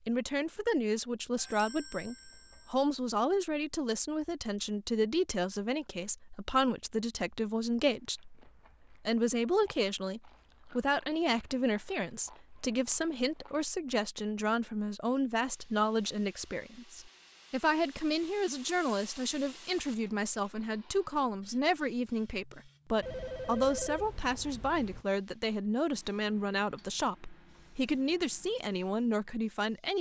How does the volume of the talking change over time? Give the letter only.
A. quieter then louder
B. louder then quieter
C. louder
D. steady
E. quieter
D.